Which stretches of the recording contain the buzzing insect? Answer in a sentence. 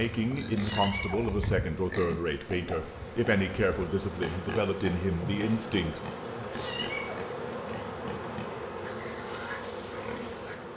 You can hear the buzzing insect from 0.0 to 10.7 s.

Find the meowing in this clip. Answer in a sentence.
The meowing can be heard from 0.5 to 1.3 s and from 6.5 to 7.2 s.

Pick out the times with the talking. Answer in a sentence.
You can hear the talking from 0.0 to 6.0 s.